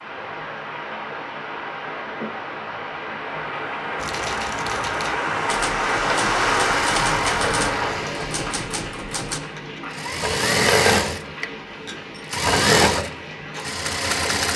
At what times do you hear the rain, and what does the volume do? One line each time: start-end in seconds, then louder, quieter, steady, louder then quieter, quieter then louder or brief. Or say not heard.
0.0-14.4 louder then quieter.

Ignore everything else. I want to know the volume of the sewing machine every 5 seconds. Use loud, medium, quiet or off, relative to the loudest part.
off, medium, loud.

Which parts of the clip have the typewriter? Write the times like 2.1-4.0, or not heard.
4.0-9.4.